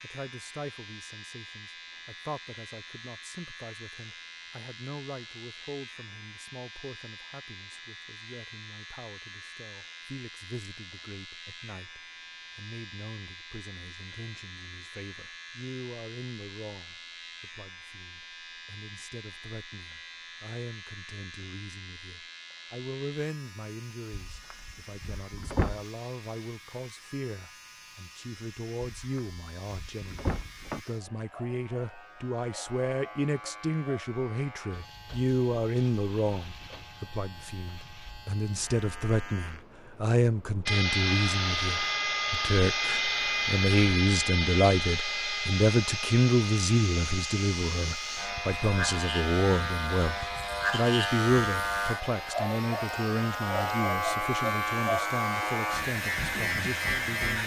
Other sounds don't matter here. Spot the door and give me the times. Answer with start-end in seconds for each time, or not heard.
24.1-25.8, 28.8-30.8.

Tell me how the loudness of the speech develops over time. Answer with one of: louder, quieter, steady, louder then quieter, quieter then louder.
louder.